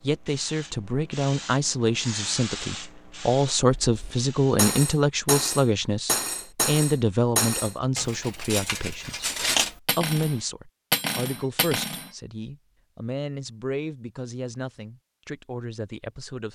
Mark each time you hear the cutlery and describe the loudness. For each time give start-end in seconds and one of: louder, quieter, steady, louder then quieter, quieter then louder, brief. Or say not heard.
3.8-12.1 steady.